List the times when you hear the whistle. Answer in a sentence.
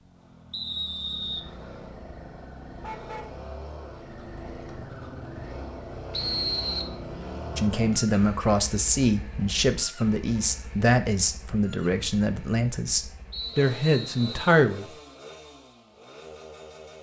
You can hear the whistle from 0.5 to 1.4 s, from 6.1 to 7.0 s and from 13.3 to 14.6 s.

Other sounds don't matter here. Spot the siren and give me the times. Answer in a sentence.
The siren can't be heard in this clip.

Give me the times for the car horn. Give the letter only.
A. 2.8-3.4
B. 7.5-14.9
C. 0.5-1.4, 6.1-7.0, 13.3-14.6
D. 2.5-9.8
A.